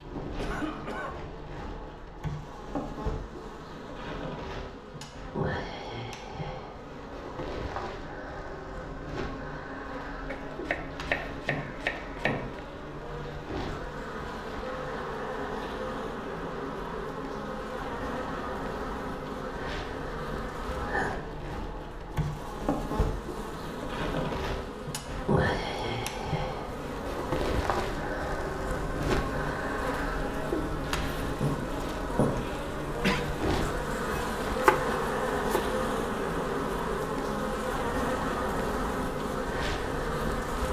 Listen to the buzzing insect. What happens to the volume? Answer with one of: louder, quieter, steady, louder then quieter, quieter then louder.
louder.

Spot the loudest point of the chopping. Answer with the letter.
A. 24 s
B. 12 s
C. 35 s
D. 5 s
C.